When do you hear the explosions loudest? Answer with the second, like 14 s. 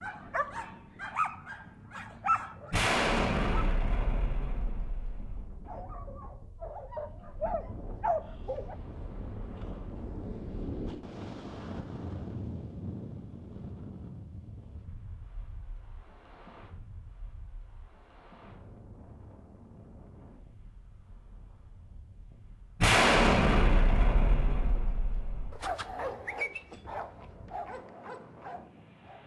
23 s.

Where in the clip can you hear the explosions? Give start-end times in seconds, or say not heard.
2.7-5.5, 22.8-25.6.